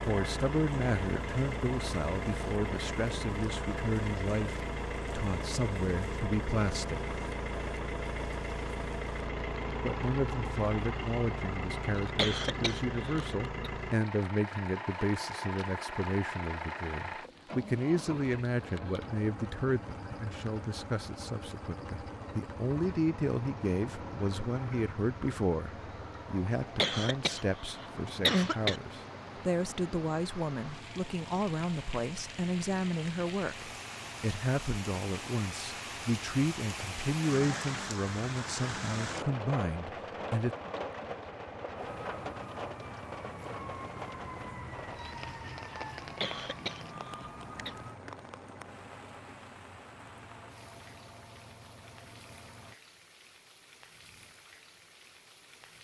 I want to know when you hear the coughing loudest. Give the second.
28 s.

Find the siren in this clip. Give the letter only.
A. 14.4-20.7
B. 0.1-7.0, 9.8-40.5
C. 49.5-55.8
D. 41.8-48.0
D.